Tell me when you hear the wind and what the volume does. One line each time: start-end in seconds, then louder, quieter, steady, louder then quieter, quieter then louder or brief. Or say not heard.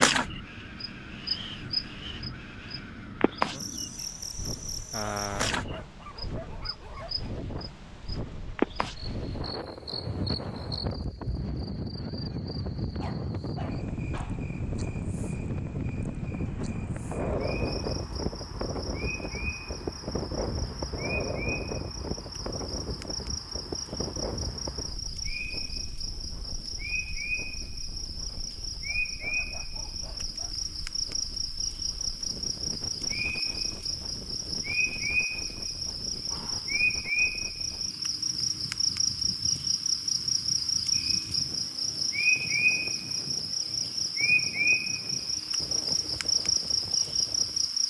0.1-47.8 louder then quieter.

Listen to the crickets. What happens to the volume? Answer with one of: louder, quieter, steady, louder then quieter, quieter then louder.
quieter then louder.